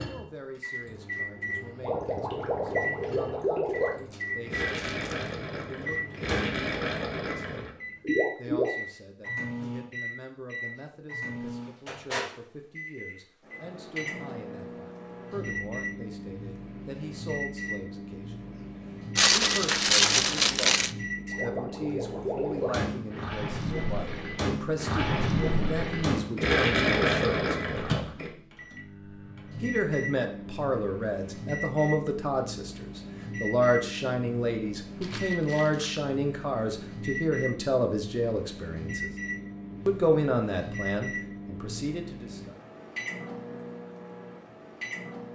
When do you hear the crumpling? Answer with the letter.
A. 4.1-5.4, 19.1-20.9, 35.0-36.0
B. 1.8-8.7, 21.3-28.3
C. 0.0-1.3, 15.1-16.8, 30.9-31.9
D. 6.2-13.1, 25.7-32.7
A.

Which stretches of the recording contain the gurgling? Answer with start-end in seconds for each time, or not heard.
1.8-8.7, 21.3-28.3.